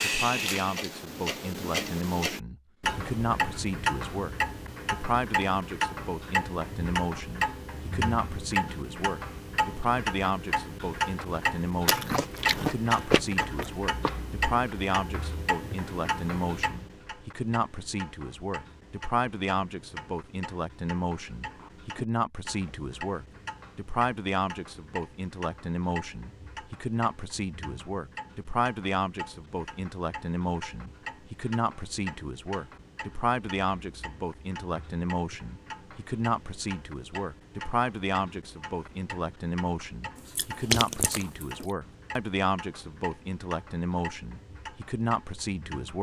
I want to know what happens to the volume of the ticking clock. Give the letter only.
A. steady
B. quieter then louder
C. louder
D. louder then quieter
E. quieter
E.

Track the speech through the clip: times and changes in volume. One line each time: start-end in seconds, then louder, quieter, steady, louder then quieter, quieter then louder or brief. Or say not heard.
0.0-45.9 steady.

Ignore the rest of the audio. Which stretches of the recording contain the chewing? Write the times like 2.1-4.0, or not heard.
11.8-14.1, 40.1-41.5.